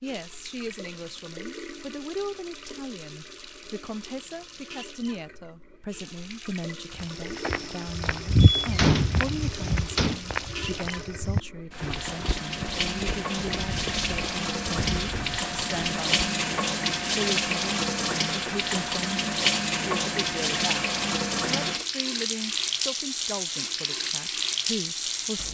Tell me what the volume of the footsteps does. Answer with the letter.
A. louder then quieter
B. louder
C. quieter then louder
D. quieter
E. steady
D.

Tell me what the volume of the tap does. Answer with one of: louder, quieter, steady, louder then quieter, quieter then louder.
louder.